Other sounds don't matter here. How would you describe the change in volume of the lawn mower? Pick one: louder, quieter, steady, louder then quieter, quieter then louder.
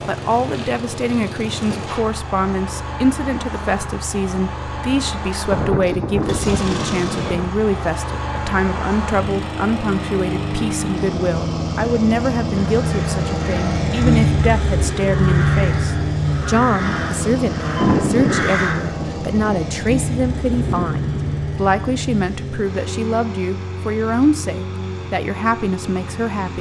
louder then quieter.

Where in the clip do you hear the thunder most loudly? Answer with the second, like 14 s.
18 s.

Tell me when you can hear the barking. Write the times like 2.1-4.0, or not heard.
not heard.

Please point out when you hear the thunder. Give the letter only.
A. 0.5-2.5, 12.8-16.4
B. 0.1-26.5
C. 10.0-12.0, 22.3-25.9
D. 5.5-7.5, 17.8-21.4
D.